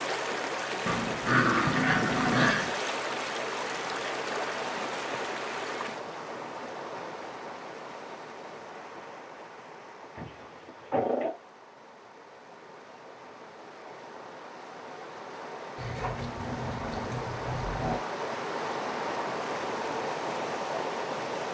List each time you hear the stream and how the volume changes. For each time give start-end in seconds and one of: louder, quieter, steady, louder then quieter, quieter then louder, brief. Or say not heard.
0.0-21.4 quieter then louder.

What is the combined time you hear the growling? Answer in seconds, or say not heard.
5 s.